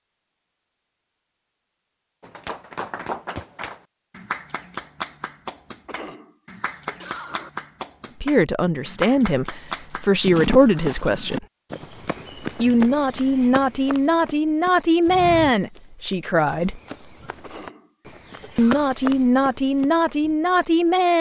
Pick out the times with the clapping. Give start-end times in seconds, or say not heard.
2.2-10.1.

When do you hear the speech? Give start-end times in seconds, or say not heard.
8.2-11.4, 12.6-16.8, 18.6-21.1.